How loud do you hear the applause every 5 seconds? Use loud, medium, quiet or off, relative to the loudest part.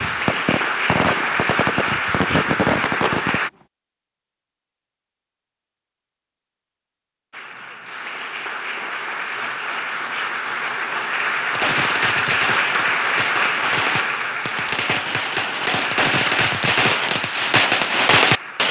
loud, medium, loud, medium.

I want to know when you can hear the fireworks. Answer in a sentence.
You can hear the fireworks from 0.0 to 3.5 s and from 11.5 to 18.6 s.